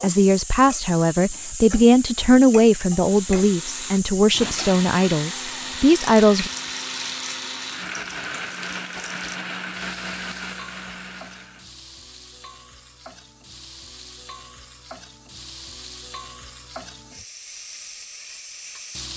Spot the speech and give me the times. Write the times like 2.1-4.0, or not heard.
0.0-6.5.